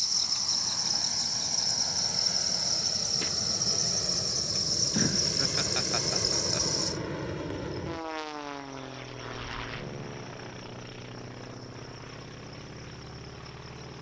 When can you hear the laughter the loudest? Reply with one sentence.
The loudest moment of the laughter is at 5 seconds.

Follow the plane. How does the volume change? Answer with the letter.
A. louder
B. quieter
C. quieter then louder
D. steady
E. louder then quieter
E.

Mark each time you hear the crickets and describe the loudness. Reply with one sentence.
The crickets can be heard from 0.0 to 13.9 s, getting quieter.